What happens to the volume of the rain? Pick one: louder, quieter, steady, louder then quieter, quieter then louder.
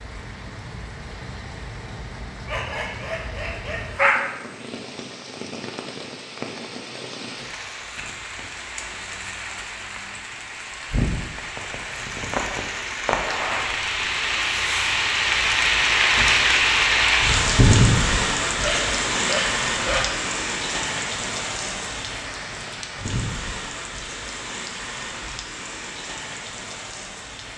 louder then quieter.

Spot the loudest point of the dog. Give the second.
4 s.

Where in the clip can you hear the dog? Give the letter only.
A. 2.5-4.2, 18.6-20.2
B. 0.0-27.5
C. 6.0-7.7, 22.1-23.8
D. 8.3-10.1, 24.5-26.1
A.